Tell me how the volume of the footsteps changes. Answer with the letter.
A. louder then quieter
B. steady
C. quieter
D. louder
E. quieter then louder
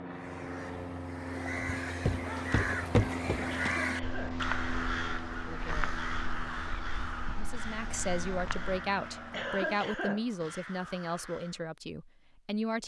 C.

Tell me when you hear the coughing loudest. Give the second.
10 s.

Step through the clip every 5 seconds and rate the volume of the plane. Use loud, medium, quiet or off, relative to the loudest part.
loud, medium, off.